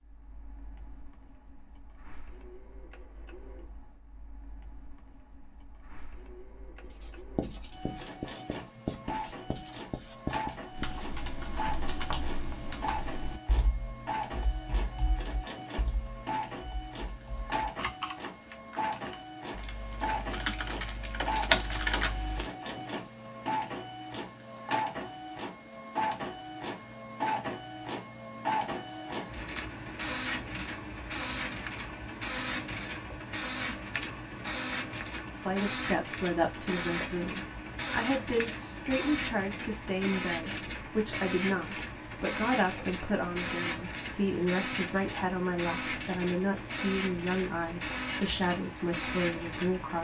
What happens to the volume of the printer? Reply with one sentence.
The loudness of the printer goes up.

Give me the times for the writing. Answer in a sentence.
The writing can be heard from 6.8 to 12.6 s.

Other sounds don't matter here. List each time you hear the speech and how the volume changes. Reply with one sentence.
You can hear the speech from 35.4 to 49.9 s, at a steady volume.